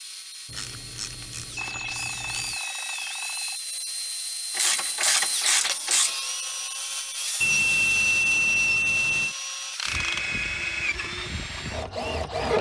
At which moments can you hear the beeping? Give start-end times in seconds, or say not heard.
1.6-3.6, 7.4-9.3.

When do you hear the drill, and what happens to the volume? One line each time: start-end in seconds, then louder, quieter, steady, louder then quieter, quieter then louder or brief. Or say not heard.
0.0-12.5 louder.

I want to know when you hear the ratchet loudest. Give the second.
5 s.